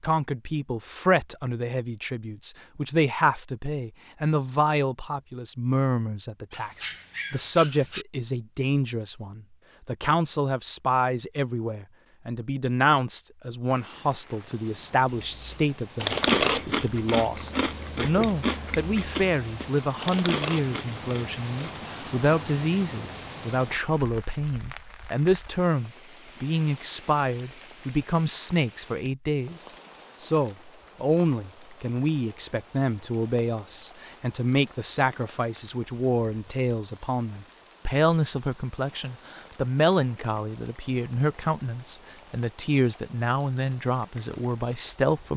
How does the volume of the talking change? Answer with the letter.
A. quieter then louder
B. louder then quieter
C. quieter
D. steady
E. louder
D.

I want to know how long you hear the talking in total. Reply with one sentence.
The talking can be heard for 45 seconds in total.